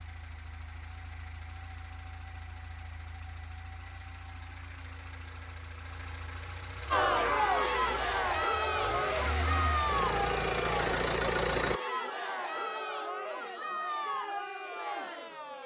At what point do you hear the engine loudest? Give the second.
11 s.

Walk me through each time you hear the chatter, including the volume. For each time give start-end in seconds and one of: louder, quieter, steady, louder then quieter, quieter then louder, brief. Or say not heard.
6.9-15.6 quieter.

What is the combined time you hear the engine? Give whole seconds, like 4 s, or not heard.
12 s.